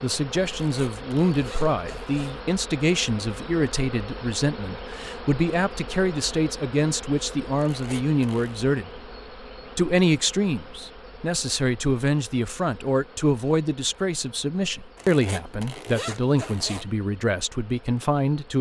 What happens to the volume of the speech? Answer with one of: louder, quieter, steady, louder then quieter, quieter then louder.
steady.